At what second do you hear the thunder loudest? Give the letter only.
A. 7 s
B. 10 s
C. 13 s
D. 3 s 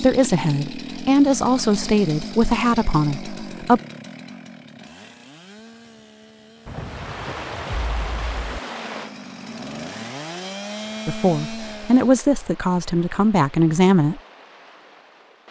A.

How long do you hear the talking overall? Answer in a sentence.
The talking can be heard for 7 seconds in total.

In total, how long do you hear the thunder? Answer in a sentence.
You can hear the thunder for 2 seconds altogether.